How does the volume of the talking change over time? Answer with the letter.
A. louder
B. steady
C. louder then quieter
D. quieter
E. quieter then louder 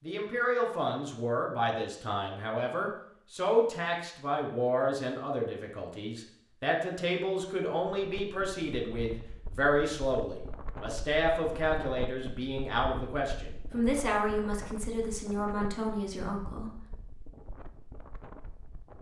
B.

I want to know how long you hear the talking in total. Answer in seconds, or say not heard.
17 s.